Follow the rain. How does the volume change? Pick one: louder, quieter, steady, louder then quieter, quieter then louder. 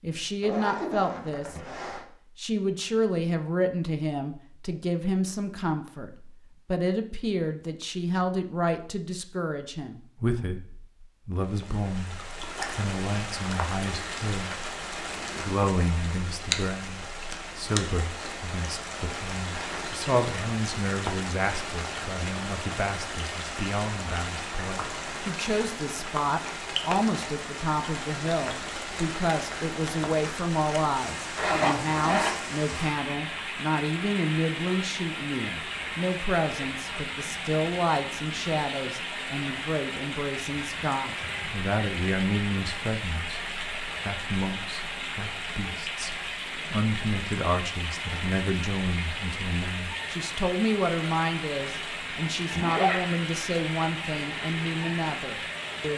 steady.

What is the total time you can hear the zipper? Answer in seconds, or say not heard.
4 s.